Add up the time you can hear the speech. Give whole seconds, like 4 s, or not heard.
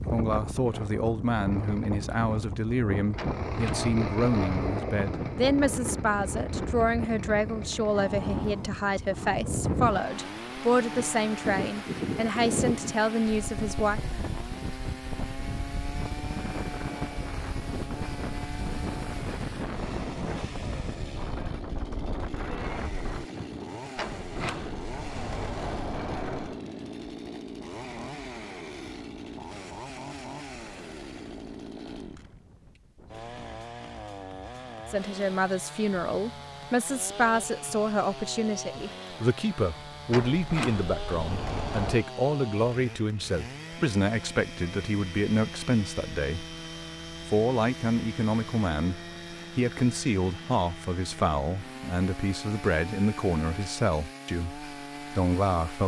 34 s.